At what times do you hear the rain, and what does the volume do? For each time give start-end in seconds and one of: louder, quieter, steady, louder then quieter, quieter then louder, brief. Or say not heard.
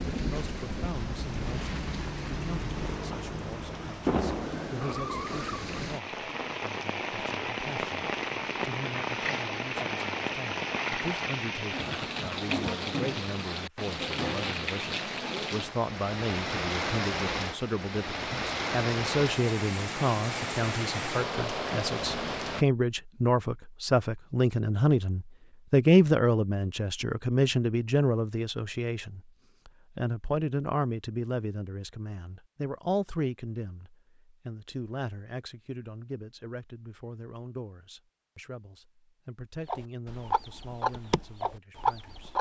0.0-22.6 steady.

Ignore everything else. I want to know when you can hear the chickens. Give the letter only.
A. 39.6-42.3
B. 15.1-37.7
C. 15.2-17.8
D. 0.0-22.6
A.